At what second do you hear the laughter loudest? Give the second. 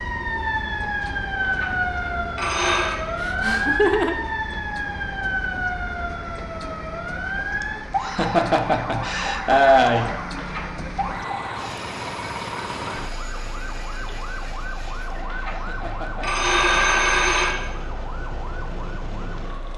10 s.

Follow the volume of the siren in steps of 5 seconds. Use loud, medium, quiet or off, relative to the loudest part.
loud, loud, medium, medium.